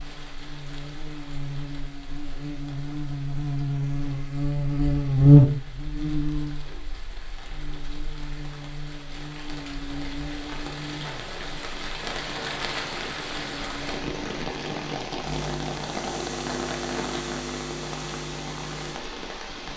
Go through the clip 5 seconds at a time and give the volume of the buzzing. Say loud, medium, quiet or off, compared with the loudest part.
medium, loud, quiet, quiet.